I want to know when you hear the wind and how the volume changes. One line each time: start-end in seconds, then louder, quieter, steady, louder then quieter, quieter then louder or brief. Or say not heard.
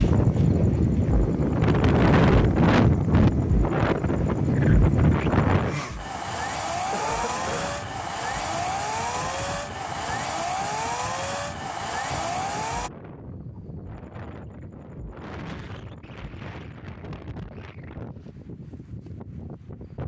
0.0-20.0 quieter.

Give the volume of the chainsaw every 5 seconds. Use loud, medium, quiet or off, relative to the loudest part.
quiet, loud, loud, off.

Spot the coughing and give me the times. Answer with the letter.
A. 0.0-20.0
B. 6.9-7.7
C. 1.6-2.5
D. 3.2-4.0
B.